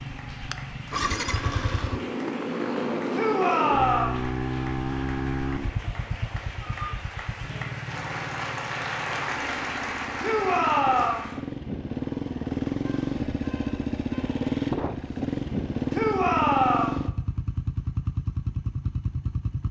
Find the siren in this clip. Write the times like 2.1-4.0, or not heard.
not heard.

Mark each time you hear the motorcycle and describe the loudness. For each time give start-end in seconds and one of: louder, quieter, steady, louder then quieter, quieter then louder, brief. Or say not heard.
0.0-19.6 quieter then louder.